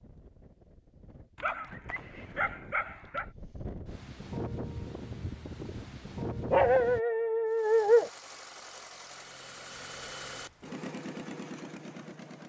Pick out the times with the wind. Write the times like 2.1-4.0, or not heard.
0.0-7.0.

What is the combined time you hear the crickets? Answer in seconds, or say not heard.
not heard.